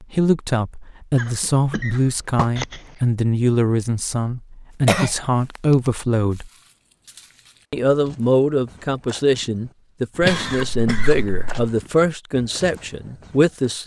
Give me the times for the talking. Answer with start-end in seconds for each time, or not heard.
0.0-6.5, 7.7-13.8.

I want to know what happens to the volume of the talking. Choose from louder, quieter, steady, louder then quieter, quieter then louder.
steady.